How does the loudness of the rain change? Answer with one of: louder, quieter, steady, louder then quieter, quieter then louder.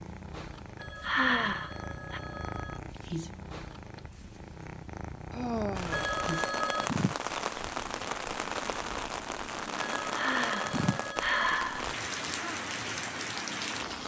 steady.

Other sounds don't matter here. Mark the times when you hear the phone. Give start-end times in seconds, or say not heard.
0.8-2.8, 5.9-6.9, 9.8-11.5.